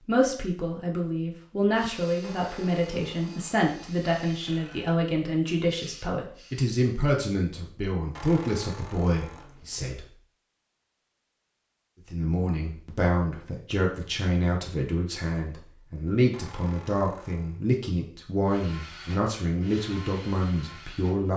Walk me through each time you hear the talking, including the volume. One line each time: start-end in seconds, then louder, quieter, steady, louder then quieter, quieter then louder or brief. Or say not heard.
0.1-10.1 steady
12.1-21.3 steady.